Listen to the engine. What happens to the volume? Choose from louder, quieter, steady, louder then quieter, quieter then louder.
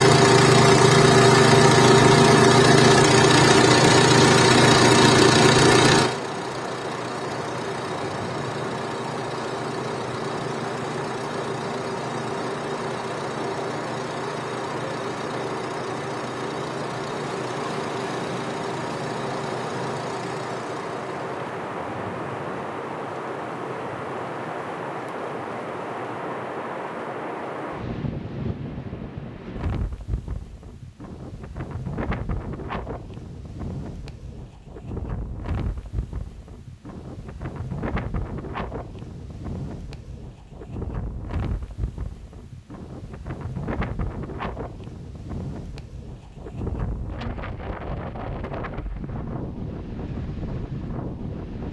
quieter.